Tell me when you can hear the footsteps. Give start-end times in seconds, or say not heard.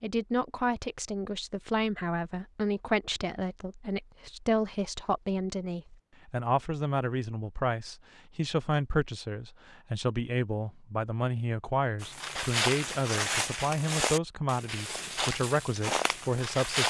12.0-16.8.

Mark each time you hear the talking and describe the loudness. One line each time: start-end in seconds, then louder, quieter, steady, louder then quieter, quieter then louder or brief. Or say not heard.
0.0-16.8 steady.